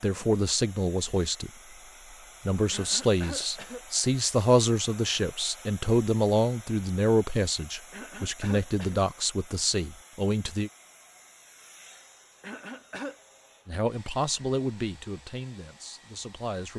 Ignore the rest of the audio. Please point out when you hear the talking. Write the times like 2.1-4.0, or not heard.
0.0-1.5, 2.5-10.7, 13.7-16.7.